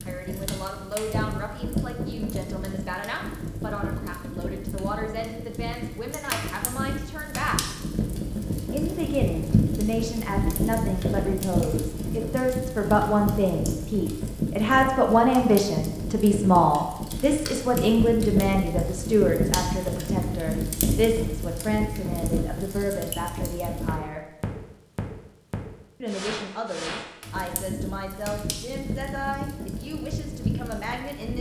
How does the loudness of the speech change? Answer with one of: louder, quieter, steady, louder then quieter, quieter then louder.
louder then quieter.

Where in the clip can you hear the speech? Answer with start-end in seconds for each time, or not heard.
0.0-7.6, 8.7-24.3, 26.0-31.3.